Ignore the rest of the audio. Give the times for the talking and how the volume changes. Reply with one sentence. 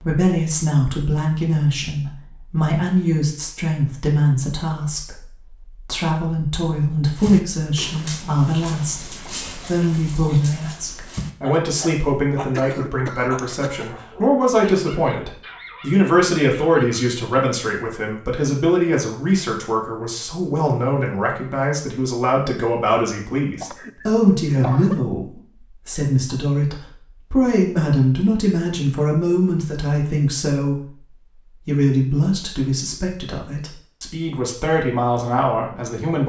You can hear the talking from 0.0 to 36.2 s, at a steady volume.